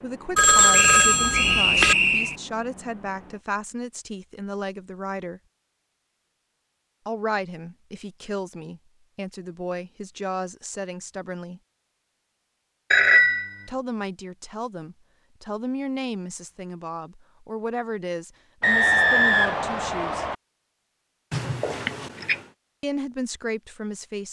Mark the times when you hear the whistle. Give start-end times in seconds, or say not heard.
0.7-2.4, 18.6-20.4.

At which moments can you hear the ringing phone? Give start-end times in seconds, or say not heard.
0.3-1.9, 12.9-13.6, 21.3-22.4.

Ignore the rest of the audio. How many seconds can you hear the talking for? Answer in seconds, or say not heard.
18 s.